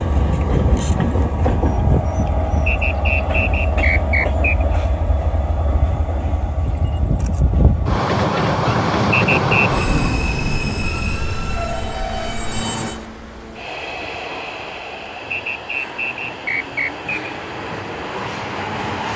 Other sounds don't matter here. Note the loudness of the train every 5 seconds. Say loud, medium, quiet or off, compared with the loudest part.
loud, loud, medium, medium.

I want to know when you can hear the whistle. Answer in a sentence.
The whistle can be heard from 2.6 to 4.7 s, from 9.1 to 9.8 s and from 15.3 to 17.1 s.